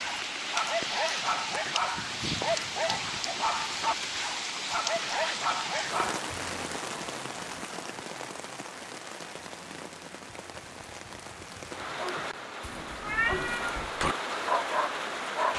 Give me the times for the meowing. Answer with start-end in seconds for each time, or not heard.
12.6-13.9.